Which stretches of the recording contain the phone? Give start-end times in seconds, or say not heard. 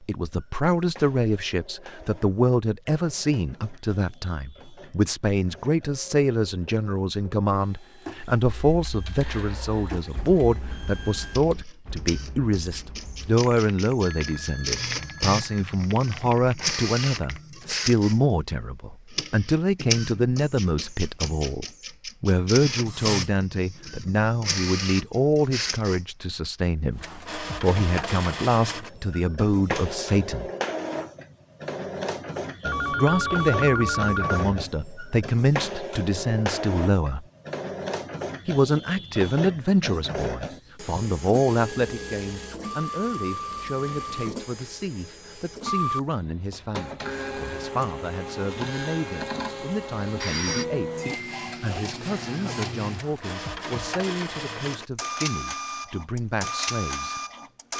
14.0-15.7, 32.6-34.6, 50.0-50.6.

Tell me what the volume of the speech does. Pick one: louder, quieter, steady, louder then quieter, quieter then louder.
quieter.